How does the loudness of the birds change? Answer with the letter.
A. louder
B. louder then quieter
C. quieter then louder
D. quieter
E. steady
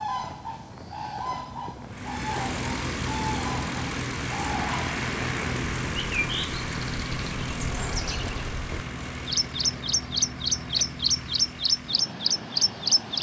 A.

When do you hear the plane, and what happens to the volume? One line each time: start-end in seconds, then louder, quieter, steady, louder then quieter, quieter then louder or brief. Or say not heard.
1.9-13.1 quieter.